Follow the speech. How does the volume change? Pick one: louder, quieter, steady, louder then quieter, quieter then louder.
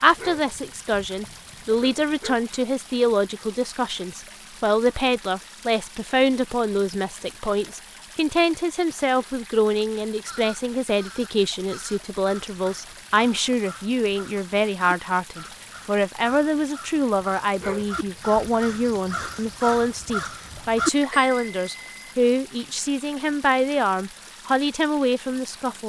steady.